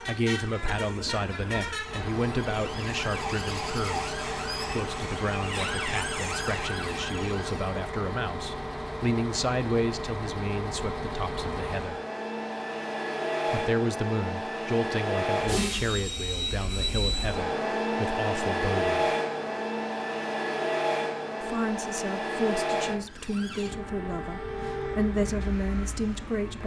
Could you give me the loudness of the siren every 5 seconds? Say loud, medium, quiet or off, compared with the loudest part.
loud, loud, off, off, loud, medium.